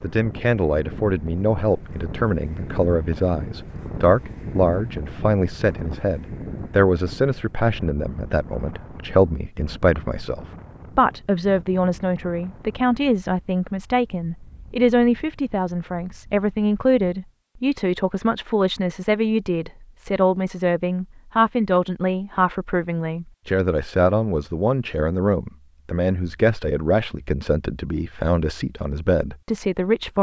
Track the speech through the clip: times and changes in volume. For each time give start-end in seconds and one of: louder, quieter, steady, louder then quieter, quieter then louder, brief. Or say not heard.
0.0-30.1 steady.